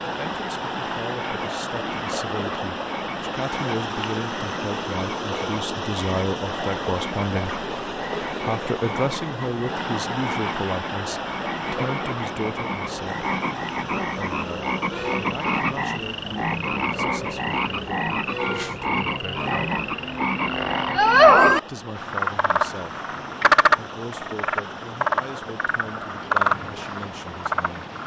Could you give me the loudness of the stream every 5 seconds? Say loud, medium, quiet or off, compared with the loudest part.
loud, loud, loud, medium, medium, medium.